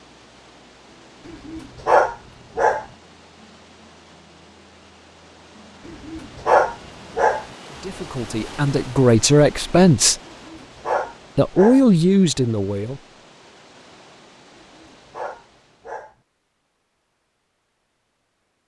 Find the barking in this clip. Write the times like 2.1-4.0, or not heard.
1.2-2.9, 5.8-7.5, 10.2-11.8, 14.6-16.1.